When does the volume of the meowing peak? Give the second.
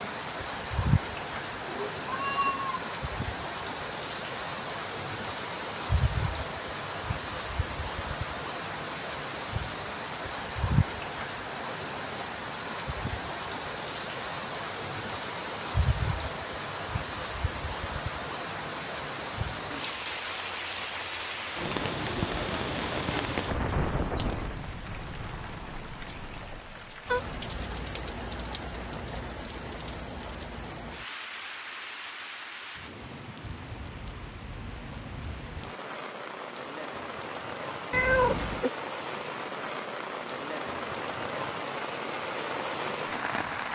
38 s.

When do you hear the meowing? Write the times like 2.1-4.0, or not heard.
1.6-2.9, 37.9-38.7.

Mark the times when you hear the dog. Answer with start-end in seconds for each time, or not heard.
not heard.